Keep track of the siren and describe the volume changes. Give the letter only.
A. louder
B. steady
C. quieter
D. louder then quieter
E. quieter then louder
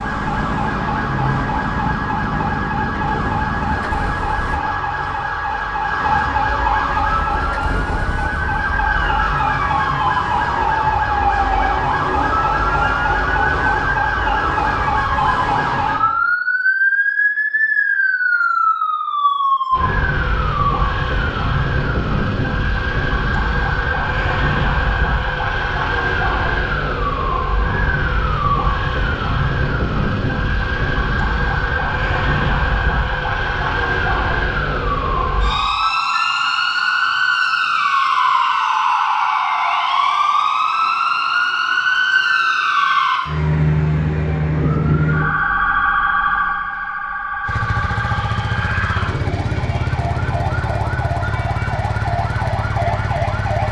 B.